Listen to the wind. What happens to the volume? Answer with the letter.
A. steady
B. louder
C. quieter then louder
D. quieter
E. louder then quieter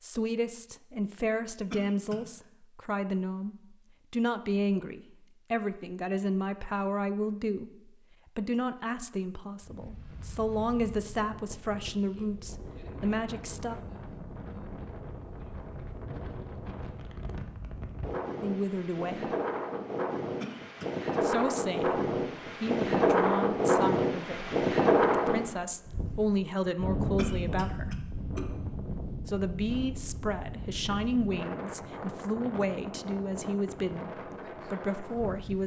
E.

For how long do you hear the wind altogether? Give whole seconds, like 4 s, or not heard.
26 s.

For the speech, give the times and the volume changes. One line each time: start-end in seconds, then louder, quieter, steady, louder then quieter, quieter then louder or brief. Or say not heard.
0.0-13.8 steady
18.4-19.4 brief
21.2-28.0 quieter then louder
29.2-35.6 steady.